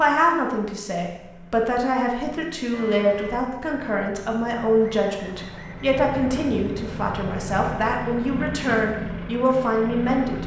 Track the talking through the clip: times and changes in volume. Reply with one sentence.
The talking can be heard from 0.0 to 10.4 s, at a steady volume.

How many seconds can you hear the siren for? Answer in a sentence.
You can't hear the siren here.